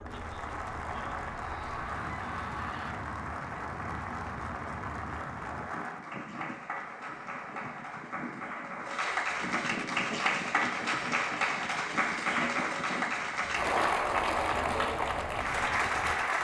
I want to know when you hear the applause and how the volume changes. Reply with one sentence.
You can hear the applause from 0.0 to 16.3 s, getting louder.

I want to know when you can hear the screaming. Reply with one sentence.
You can hear the screaming from 1.4 to 3.0 s.